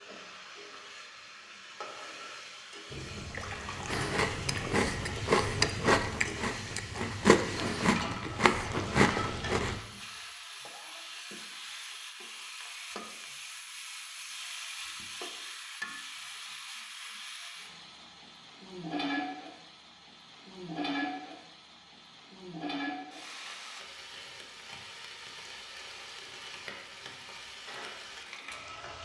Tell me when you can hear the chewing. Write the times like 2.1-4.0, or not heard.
3.9-9.8.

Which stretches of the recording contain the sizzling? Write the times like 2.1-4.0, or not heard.
0.0-29.0.